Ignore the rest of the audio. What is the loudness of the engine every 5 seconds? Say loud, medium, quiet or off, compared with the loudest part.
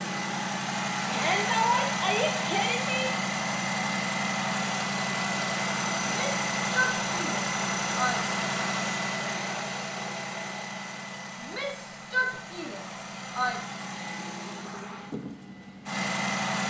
loud, loud, medium, loud.